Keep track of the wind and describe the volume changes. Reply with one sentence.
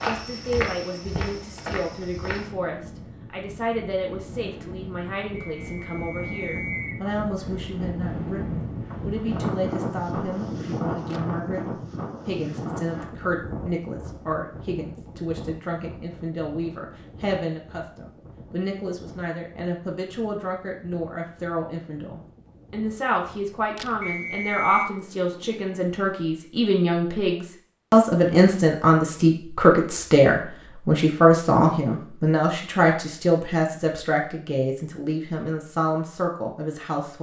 The loudness of the wind goes up, then down.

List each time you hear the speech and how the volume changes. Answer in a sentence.
The speech can be heard from 0.0 to 37.1 s, getting louder.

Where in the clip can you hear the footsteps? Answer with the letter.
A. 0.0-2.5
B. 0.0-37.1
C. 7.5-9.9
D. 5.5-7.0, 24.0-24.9
A.